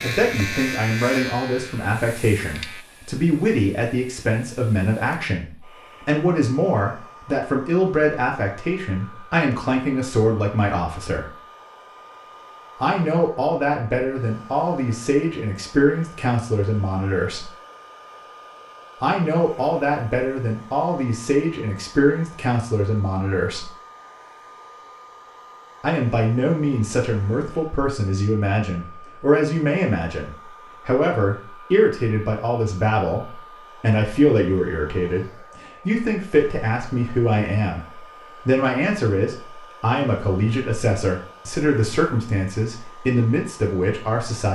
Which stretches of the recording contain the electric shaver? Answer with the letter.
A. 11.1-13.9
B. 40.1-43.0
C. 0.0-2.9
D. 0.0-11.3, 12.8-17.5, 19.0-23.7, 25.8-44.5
C.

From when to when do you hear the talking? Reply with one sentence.
The talking can be heard from 0.0 to 11.3 s, from 12.8 to 17.5 s, from 19.0 to 23.7 s and from 25.8 to 44.5 s.